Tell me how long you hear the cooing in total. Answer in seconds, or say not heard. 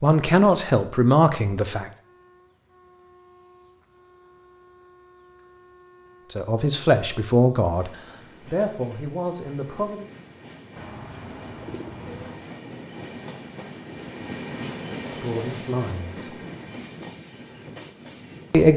2 s.